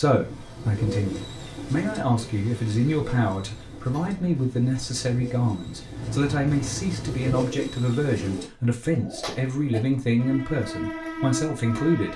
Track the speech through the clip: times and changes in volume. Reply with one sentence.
You can hear the speech from 0.0 to 12.1 s, at a steady volume.